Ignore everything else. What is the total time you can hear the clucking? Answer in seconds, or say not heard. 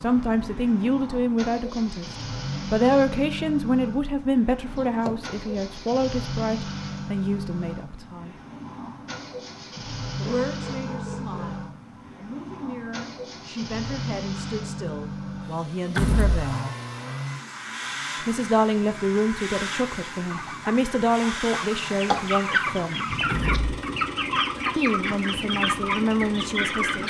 5 s.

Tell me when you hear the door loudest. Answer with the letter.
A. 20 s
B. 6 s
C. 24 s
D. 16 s
D.